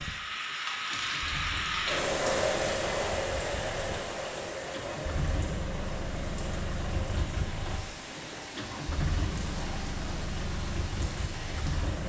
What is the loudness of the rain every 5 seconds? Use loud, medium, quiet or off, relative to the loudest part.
loud, medium, medium.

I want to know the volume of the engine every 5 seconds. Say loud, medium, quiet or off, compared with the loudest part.
medium, loud, loud.